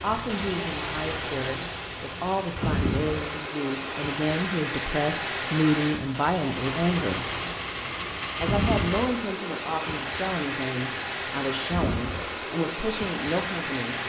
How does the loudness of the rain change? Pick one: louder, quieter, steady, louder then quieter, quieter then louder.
steady.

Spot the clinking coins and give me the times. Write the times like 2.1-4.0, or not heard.
6.5-9.2.